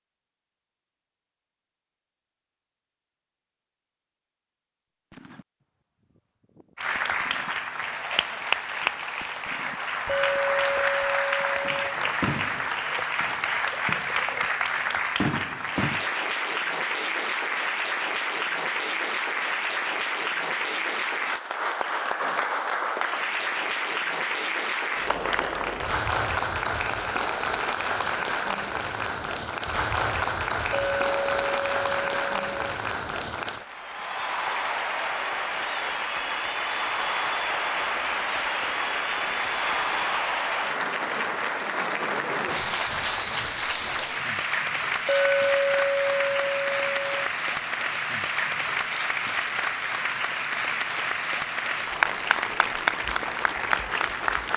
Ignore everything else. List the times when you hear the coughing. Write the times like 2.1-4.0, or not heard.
not heard.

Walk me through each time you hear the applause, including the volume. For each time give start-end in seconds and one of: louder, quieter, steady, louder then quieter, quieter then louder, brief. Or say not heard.
6.8-54.5 steady.